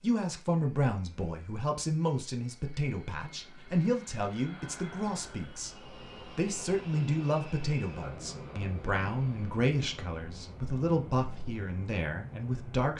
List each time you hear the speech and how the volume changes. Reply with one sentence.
The speech can be heard from 0.0 to 12.9 s, at a steady volume.